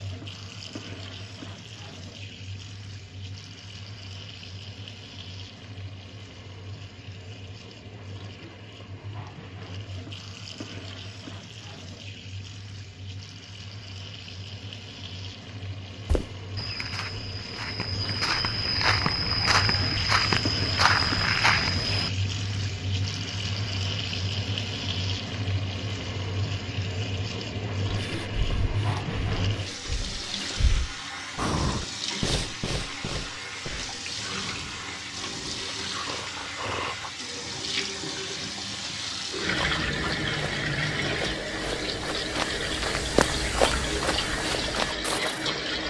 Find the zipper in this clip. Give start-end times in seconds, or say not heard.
not heard.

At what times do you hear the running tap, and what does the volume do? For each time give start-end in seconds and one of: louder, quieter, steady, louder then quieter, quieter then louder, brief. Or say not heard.
0.0-45.8 louder.